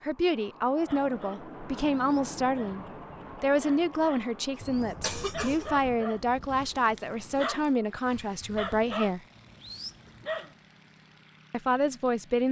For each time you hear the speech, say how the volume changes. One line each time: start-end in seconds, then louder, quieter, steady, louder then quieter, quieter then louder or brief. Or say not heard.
0.0-9.2 steady
11.5-12.4 brief.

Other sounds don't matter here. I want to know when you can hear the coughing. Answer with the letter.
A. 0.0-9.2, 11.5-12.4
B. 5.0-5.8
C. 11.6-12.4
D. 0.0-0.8
B.